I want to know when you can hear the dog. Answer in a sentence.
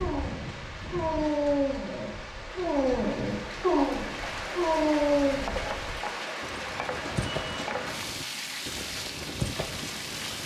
You can hear the dog from 0.0 to 5.7 s.